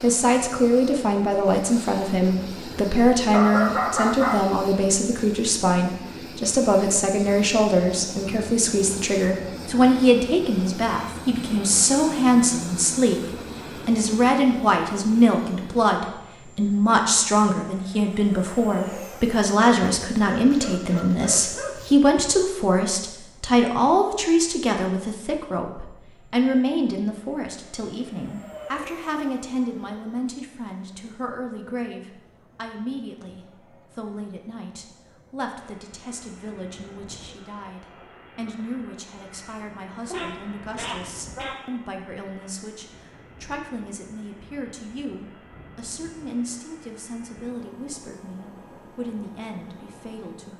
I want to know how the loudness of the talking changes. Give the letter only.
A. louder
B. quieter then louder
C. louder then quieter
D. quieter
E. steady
D.